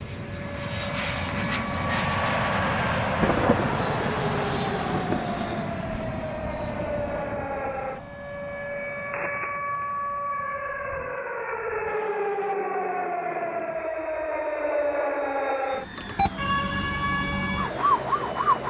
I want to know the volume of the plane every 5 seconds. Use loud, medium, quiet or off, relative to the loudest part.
loud, medium, quiet, quiet.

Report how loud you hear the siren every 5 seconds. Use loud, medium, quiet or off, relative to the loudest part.
medium, medium, loud, loud.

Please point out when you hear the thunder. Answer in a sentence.
The thunder can be heard from 3.2 to 5.4 s.